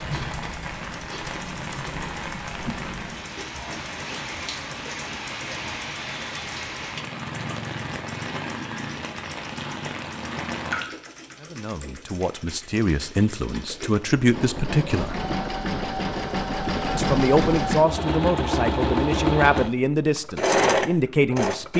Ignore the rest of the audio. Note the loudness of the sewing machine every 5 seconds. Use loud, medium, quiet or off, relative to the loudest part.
quiet, quiet, quiet, loud, loud.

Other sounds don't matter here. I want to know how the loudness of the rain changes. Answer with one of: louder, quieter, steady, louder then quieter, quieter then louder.
steady.